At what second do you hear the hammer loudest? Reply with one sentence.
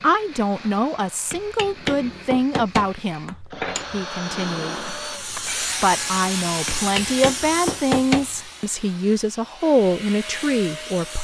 The loudest moment of the hammer is at 8 seconds.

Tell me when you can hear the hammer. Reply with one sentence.
The hammer can be heard from 1.3 to 4.0 s and from 6.7 to 8.3 s.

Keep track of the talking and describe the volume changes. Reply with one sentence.
The loudness of the talking stays about the same.